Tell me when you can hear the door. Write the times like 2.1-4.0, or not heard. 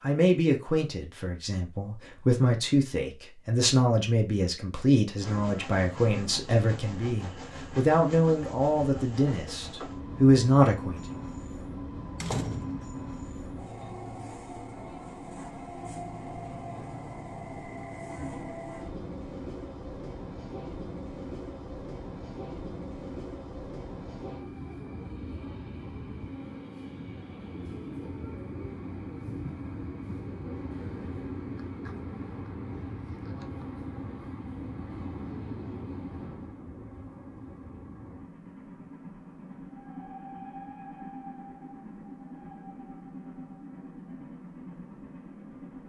12.2-12.9.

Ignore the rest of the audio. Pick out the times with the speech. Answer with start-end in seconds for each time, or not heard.
0.0-11.1.